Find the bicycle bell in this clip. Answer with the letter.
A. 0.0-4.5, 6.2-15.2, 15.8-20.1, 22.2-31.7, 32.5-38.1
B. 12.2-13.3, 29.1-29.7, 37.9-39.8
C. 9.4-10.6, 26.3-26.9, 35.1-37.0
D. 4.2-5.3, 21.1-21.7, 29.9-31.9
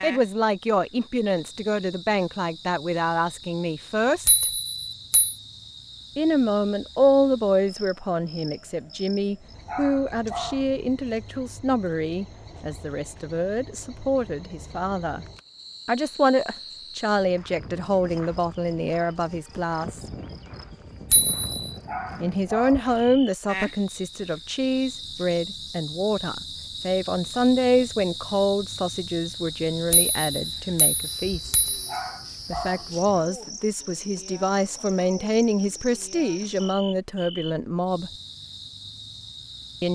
D.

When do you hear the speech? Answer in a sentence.
You can hear the speech from 0.0 to 4.5 s, from 6.2 to 15.2 s, from 15.8 to 20.1 s, from 22.2 to 31.7 s and from 32.5 to 38.1 s.